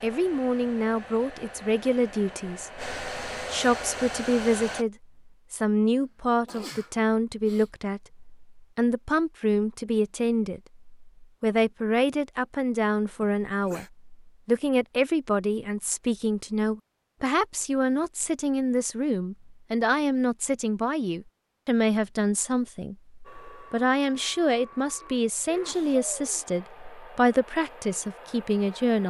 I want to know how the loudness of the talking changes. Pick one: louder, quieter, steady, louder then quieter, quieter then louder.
steady.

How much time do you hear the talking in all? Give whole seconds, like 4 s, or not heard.
29 s.